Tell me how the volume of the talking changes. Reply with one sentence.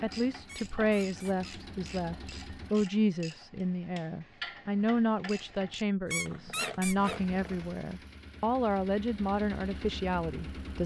The loudness of the talking stays about the same.